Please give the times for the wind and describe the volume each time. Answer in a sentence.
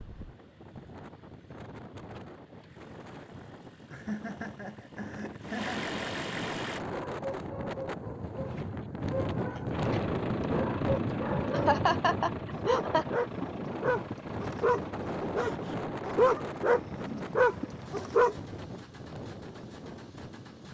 You can hear the wind from 0.0 to 20.6 s, getting louder then quieter.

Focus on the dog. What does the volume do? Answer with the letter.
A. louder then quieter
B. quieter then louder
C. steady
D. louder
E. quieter
D.